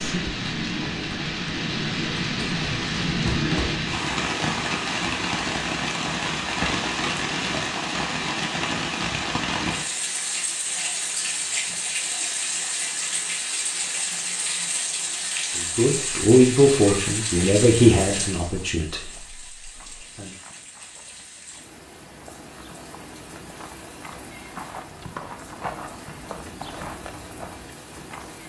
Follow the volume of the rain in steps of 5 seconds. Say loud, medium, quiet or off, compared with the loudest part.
loud, loud, loud, medium, quiet, quiet.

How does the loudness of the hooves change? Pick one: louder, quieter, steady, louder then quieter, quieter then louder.
louder.